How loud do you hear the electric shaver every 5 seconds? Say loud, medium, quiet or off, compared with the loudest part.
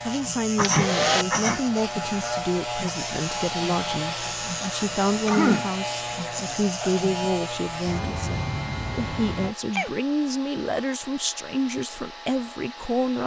loud, loud, off.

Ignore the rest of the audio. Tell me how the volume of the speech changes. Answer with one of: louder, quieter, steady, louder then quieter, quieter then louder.
steady.